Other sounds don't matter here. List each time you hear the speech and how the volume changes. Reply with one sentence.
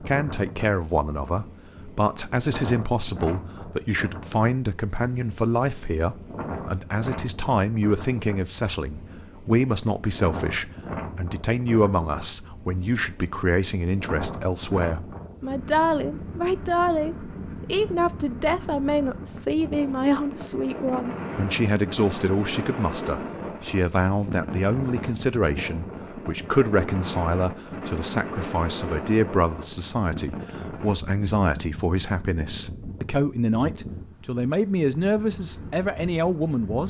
The speech can be heard from 0.0 to 36.8 s, at a steady volume.